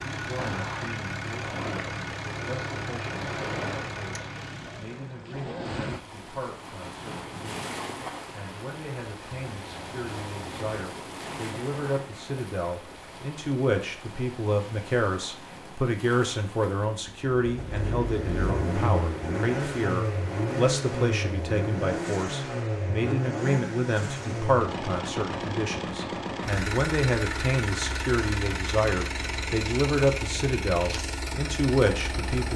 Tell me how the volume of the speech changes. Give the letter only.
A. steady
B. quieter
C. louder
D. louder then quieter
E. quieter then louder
C.